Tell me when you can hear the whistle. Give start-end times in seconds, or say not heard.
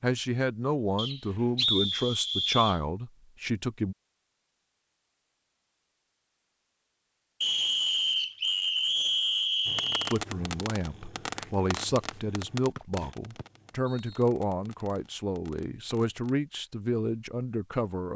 0.9-2.8, 7.4-10.2, 12.8-14.2.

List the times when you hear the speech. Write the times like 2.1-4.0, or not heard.
0.0-4.0, 10.1-18.1.